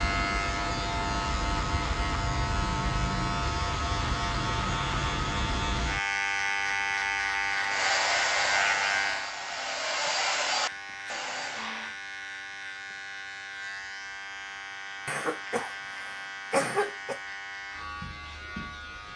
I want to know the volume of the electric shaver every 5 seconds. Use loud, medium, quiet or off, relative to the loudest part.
loud, loud, medium, medium.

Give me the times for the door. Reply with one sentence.
The door can't be heard in this clip.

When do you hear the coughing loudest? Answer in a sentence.
The loudest moment of the coughing is at 17 seconds.